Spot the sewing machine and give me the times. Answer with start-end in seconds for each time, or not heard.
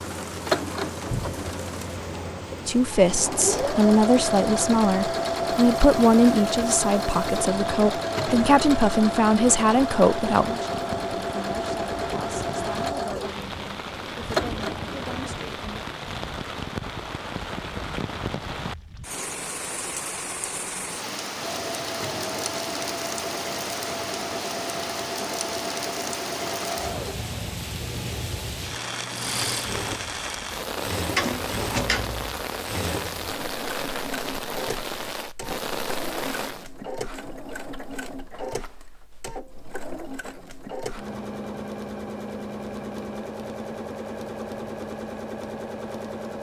0.0-15.3, 21.4-46.3.